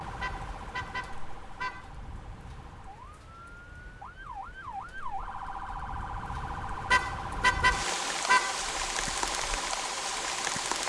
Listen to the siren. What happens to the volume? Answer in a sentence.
The loudness of the siren goes up.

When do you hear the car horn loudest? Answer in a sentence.
The volume of the car horn peaks at 8 seconds.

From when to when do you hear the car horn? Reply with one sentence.
The car horn can be heard from 0.2 to 1.9 s and from 6.9 to 8.6 s.